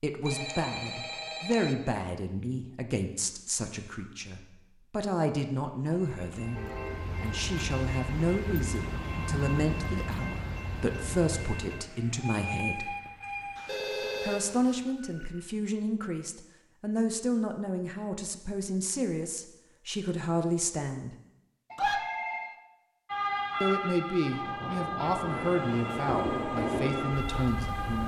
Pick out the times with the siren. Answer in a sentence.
You can hear the siren from 23.1 to 28.0 s.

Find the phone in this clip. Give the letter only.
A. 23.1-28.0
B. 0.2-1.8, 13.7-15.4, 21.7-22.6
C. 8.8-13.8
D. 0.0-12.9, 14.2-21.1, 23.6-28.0
B.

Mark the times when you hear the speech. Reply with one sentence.
The speech can be heard from 0.0 to 12.9 s, from 14.2 to 21.1 s and from 23.6 to 28.0 s.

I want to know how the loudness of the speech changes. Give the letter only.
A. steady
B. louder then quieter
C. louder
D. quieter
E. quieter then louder
A.